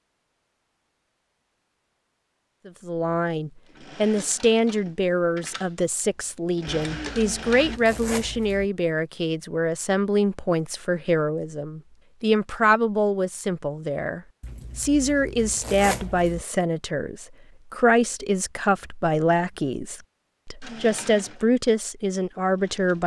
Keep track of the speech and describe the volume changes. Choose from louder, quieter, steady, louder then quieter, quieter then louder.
steady.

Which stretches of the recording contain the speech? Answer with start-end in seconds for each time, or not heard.
2.6-23.0.